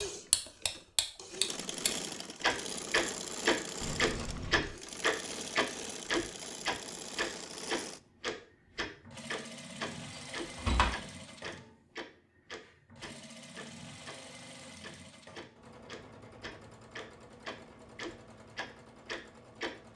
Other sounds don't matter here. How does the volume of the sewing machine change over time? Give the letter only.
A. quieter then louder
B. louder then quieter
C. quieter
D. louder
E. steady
C.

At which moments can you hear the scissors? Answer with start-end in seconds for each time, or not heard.
3.8-4.8.